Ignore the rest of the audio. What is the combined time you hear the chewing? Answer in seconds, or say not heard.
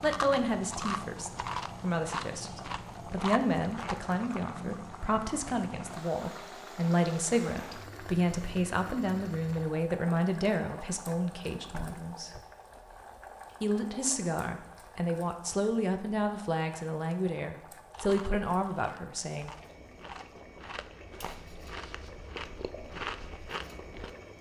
10 s.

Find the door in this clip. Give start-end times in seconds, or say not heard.
11.7-12.8.